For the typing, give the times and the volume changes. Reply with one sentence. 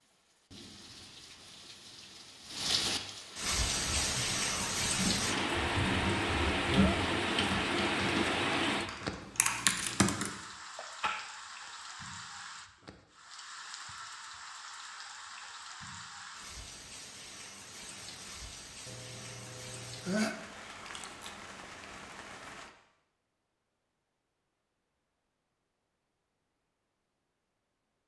You can hear the typing from 3.8 to 10.3 s, getting louder.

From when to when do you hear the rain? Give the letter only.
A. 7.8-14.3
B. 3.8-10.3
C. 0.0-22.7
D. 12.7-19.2
C.